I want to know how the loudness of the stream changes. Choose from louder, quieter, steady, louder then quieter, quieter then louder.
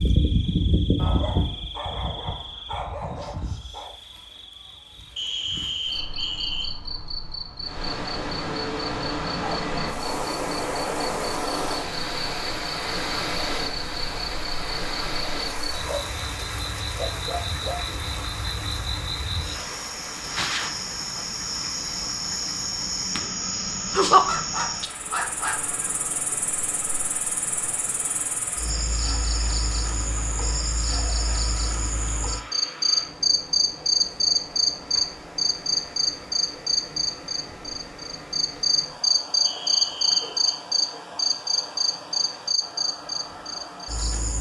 quieter.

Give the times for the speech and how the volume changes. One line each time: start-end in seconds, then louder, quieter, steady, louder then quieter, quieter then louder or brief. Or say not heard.
not heard.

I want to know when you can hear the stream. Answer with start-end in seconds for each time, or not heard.
7.6-44.2.